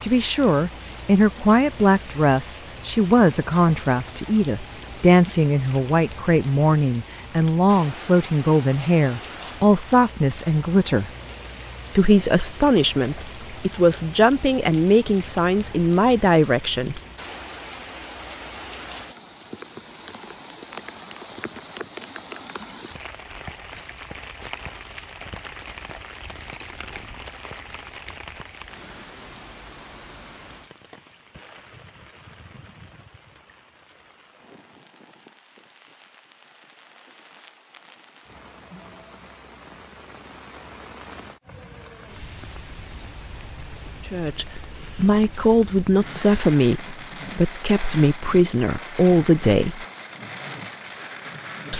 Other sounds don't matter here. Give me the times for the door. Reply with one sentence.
The door can't be heard in this clip.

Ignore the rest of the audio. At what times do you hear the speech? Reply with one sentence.
You can hear the speech from 0.0 to 11.1 s, from 11.9 to 17.0 s and from 44.1 to 49.9 s.